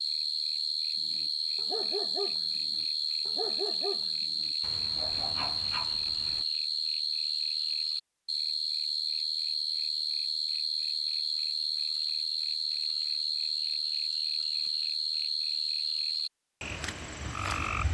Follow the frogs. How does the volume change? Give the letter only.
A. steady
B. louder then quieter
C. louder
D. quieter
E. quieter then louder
A.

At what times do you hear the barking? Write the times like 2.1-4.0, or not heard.
0.9-6.5.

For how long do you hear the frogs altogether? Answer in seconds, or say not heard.
18 s.